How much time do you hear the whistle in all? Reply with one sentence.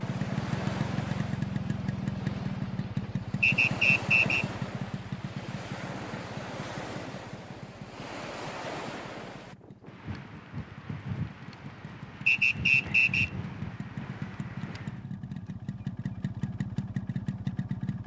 The whistle can be heard for 2 seconds in total.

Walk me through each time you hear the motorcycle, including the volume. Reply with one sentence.
The motorcycle can be heard from 0.0 to 18.0 s, getting quieter then louder.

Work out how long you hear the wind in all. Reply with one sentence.
You can hear the wind for 15 seconds altogether.